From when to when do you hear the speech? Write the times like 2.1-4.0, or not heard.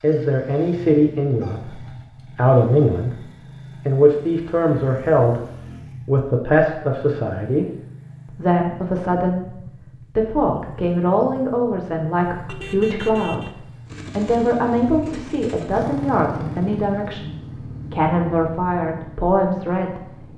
0.0-7.7, 8.2-13.6, 14.2-20.3.